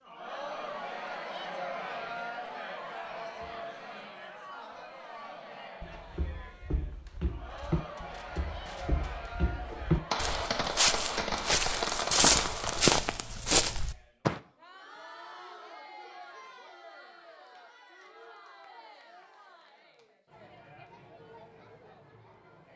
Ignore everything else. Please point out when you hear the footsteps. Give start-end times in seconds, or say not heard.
5.8-14.4.